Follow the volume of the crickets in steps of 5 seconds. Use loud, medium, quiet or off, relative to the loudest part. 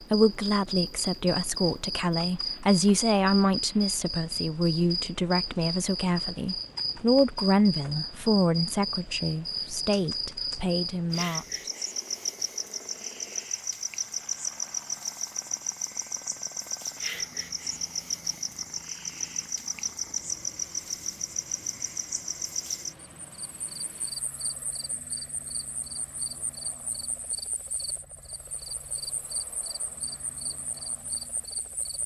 loud, loud, loud, loud, loud, medium, medium.